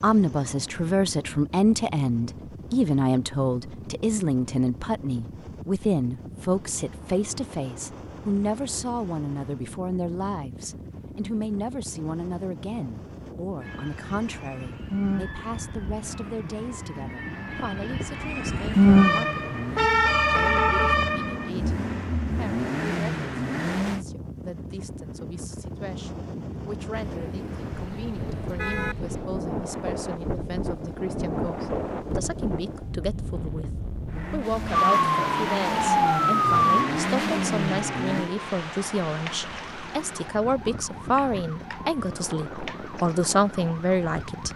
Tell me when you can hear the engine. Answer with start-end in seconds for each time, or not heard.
15.9-24.1, 34.0-38.3.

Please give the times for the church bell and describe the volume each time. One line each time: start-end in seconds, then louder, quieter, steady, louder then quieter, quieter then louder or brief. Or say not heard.
not heard.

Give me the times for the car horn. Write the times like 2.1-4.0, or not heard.
26.9-28.9.